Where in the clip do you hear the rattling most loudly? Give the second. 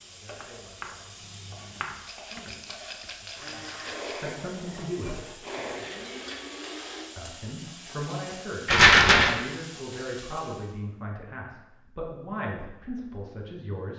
9 s.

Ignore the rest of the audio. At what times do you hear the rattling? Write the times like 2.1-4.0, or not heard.
2.0-4.2, 8.7-9.3.